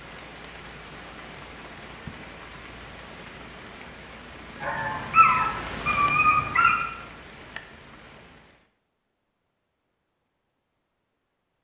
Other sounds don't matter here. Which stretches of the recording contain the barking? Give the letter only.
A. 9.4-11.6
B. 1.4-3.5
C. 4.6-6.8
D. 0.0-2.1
C.